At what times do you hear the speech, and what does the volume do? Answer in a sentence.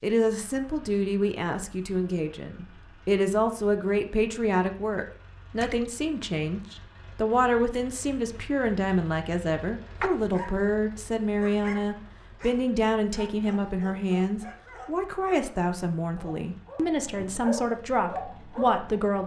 You can hear the speech from 0.0 to 19.2 s, at a steady volume.